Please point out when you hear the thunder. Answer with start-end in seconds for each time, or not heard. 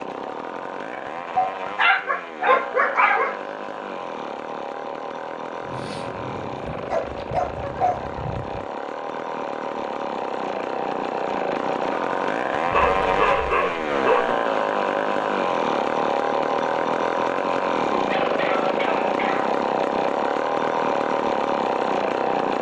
5.6-7.0.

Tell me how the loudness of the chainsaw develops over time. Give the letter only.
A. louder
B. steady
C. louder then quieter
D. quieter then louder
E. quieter
A.